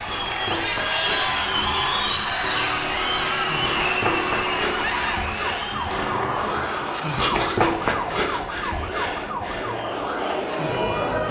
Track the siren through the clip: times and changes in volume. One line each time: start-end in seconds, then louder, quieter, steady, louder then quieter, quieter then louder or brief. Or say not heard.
0.0-11.2 louder then quieter.